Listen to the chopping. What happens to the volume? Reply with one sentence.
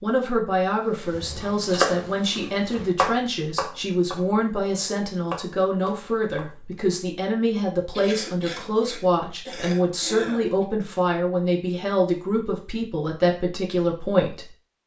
The loudness of the chopping goes down, then up.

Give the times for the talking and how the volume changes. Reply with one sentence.
You can hear the talking from 0.0 to 14.8 s, at a steady volume.